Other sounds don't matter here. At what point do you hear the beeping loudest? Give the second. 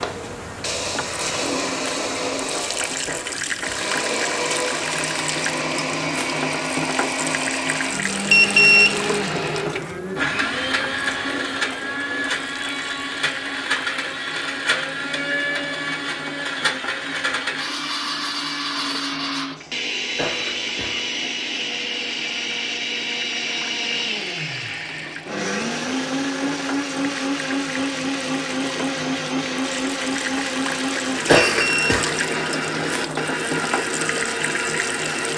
9 s.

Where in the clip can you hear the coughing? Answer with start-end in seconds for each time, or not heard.
3.0-3.9, 20.1-21.1, 31.2-32.1.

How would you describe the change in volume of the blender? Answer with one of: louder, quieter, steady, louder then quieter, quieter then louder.
steady.